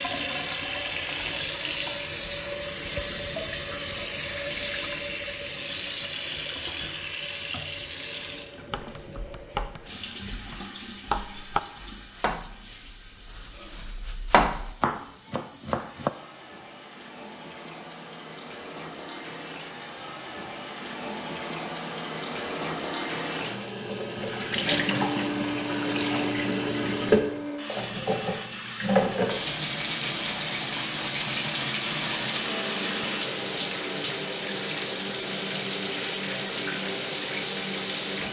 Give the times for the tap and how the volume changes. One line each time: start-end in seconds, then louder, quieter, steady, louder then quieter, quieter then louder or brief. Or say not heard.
0.0-38.2 quieter then louder.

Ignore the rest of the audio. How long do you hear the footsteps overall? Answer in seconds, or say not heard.
not heard.